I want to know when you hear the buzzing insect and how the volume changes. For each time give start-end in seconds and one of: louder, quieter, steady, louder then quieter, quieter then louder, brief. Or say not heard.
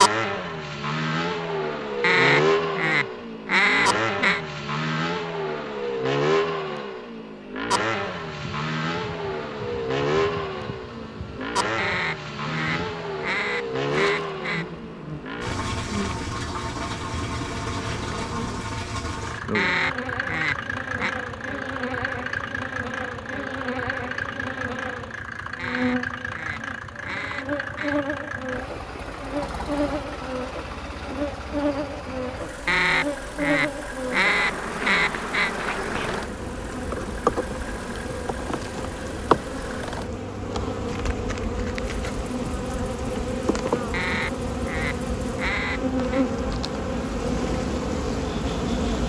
7.9-49.0 louder.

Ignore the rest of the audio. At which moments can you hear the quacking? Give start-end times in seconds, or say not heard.
2.0-4.4, 11.8-14.7, 19.5-21.1, 25.6-28.0, 32.6-35.5, 43.9-46.2.